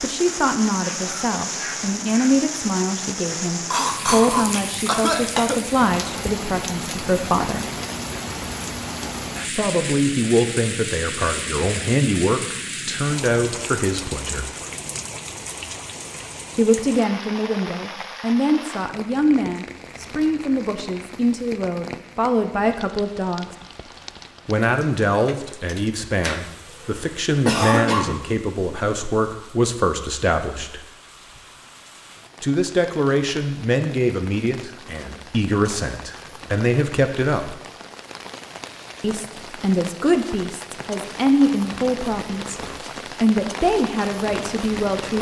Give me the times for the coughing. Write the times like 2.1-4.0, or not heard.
3.7-5.6, 26.2-28.1.